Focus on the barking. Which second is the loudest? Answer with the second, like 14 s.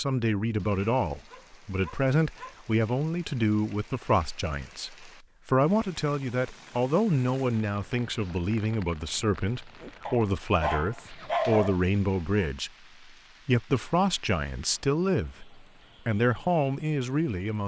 11 s.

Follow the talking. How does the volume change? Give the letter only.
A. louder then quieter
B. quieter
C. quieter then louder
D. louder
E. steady
E.